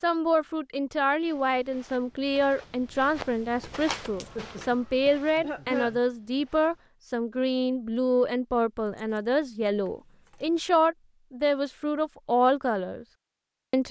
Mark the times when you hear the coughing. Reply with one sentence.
You can hear the coughing from 4.1 to 6.0 s.